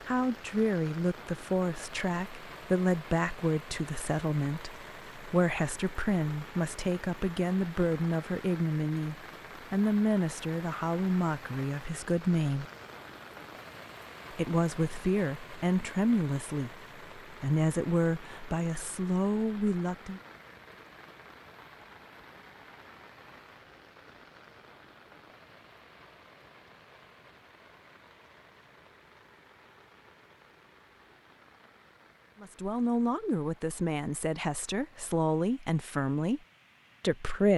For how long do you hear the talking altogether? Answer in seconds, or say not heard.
23 s.